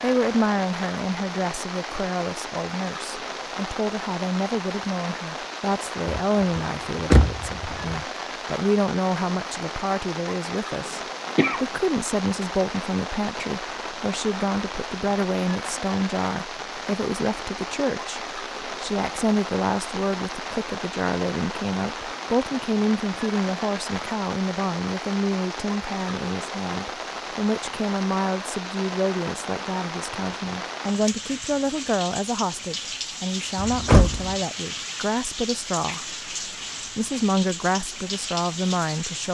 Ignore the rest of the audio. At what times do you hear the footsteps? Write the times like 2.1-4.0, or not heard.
not heard.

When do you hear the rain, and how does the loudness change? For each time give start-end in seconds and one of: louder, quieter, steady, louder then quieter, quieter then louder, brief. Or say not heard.
0.0-39.2 steady.